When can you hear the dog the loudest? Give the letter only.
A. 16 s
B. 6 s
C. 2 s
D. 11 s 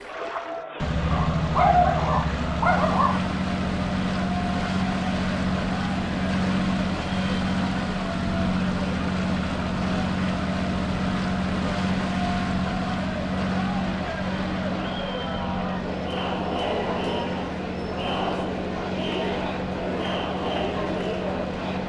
C.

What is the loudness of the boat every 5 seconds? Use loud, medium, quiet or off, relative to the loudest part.
loud, loud, loud, medium, medium.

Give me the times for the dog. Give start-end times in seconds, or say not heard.
1.1-3.1.